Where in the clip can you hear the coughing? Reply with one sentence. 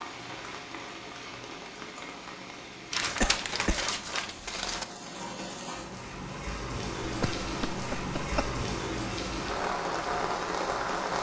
You can hear the coughing from 3.2 to 3.9 s and from 7.0 to 8.6 s.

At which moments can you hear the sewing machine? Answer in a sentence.
The sewing machine can't be heard in this clip.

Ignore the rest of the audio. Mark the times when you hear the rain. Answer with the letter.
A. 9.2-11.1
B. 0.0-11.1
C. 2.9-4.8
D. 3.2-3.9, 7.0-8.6
B.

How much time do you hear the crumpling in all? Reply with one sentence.
You can hear the crumpling for 2 seconds altogether.